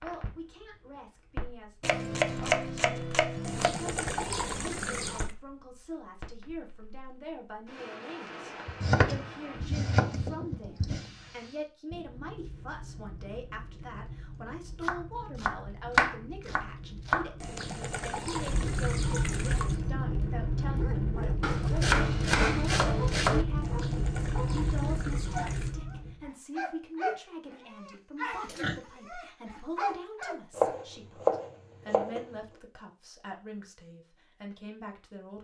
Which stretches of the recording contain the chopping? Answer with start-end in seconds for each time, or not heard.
1.8-3.7, 8.7-11.1, 14.8-17.3, 21.4-23.4, 30.6-32.2.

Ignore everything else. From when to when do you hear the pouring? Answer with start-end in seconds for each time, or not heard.
3.4-5.3, 17.4-19.8, 23.6-25.8.